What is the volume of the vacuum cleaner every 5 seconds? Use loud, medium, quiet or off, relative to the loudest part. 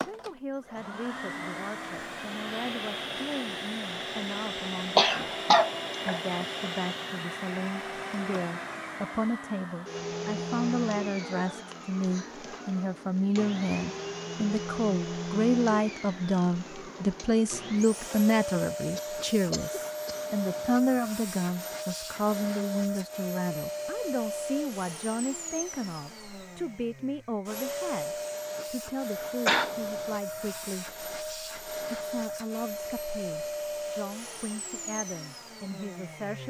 loud, loud, loud, loud, loud, loud, loud, medium.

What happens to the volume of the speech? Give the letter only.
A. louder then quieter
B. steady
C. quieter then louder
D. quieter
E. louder
A.